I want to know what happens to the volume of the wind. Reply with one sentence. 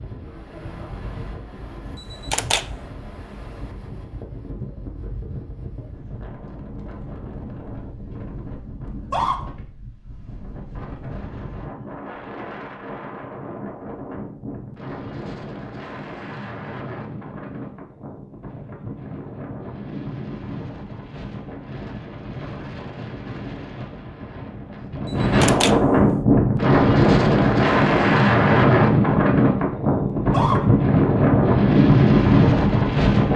The volume of the wind goes up.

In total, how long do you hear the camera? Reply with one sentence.
The camera can be heard for 2 seconds in total.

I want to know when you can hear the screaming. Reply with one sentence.
The screaming can be heard from 8.8 to 9.3 s and from 30.1 to 30.6 s.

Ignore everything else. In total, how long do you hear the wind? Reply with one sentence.
The wind can be heard for 33 seconds in total.